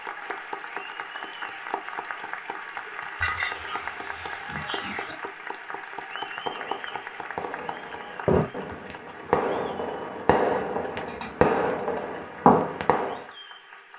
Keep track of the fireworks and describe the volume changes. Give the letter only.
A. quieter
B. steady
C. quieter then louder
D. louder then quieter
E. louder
E.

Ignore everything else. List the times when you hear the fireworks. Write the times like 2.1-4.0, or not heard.
6.3-13.2.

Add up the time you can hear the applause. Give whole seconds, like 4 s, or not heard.
14 s.